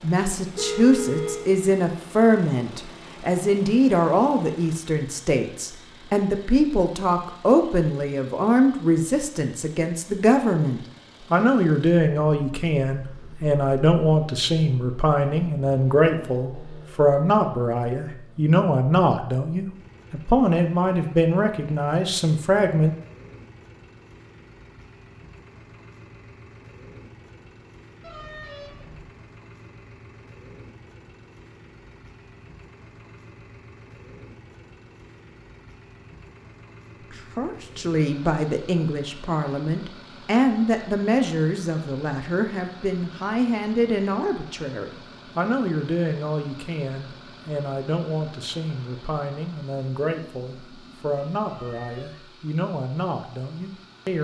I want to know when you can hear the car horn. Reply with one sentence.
The car horn can be heard from 0.5 to 1.5 s, from 28.0 to 29.2 s and from 51.5 to 52.2 s.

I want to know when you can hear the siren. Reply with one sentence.
You can't hear the siren here.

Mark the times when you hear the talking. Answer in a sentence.
You can hear the talking from 0.0 to 22.9 s and from 37.1 to 54.1 s.